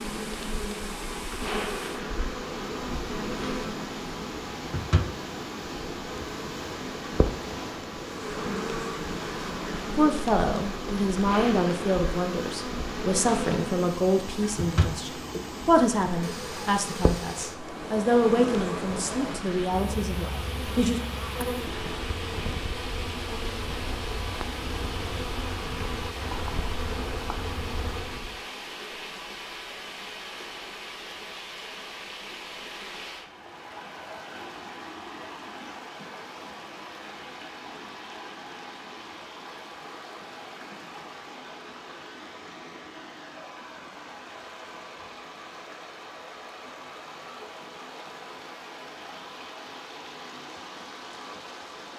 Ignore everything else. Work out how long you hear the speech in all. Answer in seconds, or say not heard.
11 s.